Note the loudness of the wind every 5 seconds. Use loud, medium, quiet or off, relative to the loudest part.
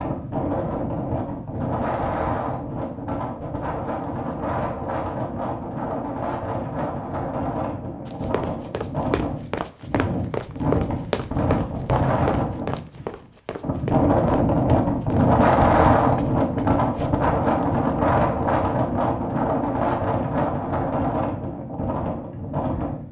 medium, medium, loud, loud, medium.